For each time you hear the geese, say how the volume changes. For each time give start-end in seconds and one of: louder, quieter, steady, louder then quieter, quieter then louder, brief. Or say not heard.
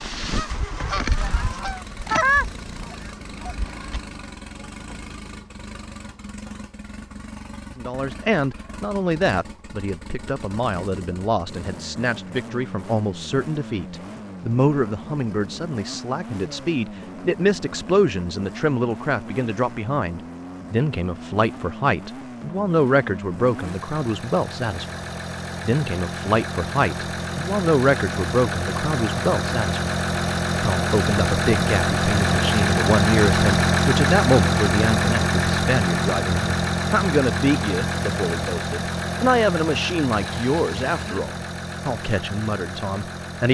0.0-4.0 louder then quieter.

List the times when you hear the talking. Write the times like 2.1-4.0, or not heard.
7.8-29.8, 30.6-43.4.